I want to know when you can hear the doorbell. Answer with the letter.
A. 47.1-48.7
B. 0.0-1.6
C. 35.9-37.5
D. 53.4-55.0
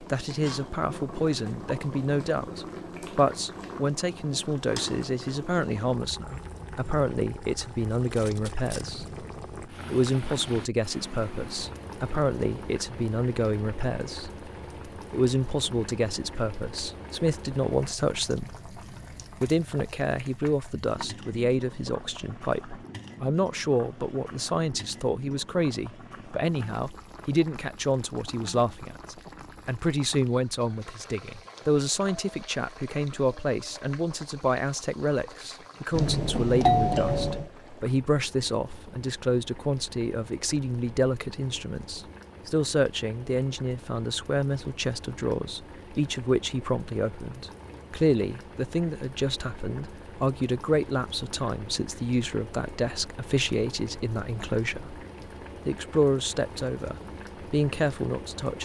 C.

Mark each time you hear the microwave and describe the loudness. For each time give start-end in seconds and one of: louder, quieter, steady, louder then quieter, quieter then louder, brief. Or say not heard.
not heard.